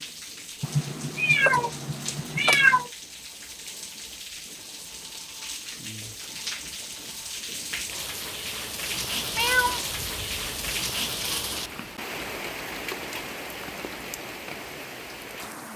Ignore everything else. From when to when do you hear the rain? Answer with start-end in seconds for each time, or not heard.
0.0-15.7.